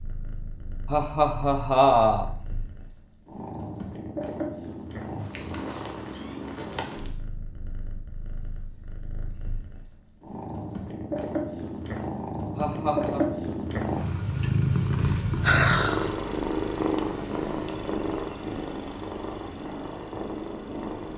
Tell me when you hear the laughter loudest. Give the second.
2 s.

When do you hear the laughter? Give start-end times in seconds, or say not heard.
0.9-2.2, 12.6-13.2.